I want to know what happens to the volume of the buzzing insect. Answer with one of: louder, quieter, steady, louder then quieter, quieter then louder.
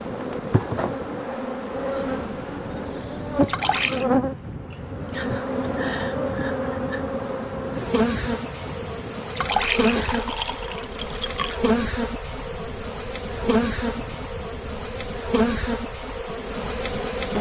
steady.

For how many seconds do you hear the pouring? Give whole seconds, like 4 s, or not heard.
3 s.